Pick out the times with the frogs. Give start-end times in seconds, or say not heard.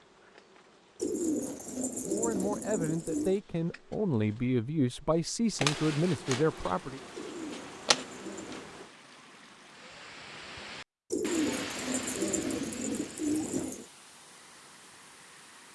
not heard.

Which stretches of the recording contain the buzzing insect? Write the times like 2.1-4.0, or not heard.
0.0-8.9.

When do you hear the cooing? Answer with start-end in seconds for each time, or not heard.
0.9-3.4, 7.1-8.7, 11.1-13.8.